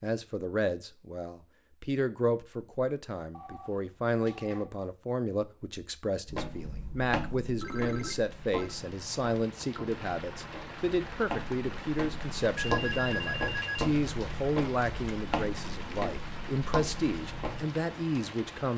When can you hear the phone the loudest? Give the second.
13 s.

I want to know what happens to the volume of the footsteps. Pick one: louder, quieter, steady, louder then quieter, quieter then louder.
quieter then louder.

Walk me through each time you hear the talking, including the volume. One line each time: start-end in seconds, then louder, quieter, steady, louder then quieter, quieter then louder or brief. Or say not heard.
0.0-18.7 steady.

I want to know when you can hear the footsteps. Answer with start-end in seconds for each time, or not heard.
6.2-17.6.